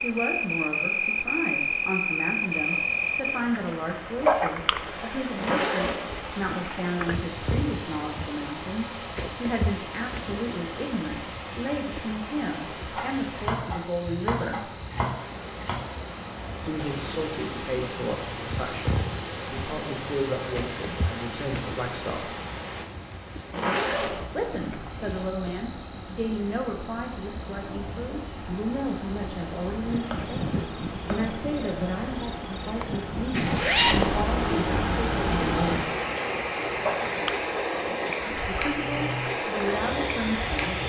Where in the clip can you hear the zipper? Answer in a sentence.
The zipper can be heard from 5.3 to 6.8 s, from 23.5 to 25.3 s and from 33.3 to 34.2 s.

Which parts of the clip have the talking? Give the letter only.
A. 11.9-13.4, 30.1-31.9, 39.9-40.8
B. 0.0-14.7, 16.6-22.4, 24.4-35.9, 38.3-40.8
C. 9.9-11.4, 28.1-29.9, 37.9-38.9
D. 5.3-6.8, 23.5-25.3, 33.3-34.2
B.